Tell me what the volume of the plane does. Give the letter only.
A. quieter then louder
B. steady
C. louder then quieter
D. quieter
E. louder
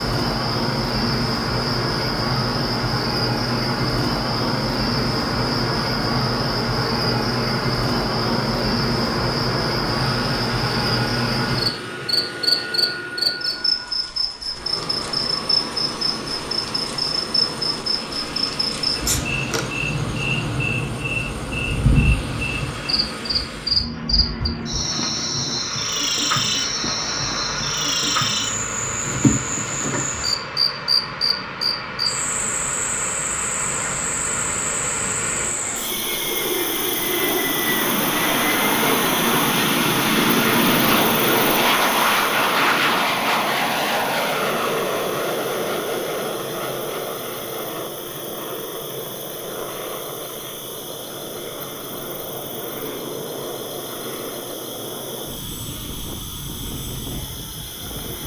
C.